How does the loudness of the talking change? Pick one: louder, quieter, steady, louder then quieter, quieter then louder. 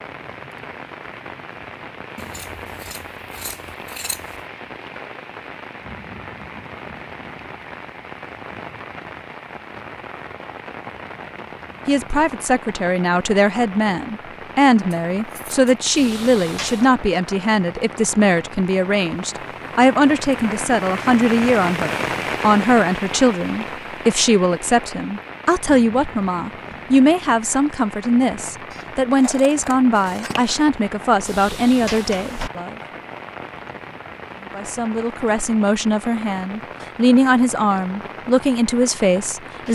steady.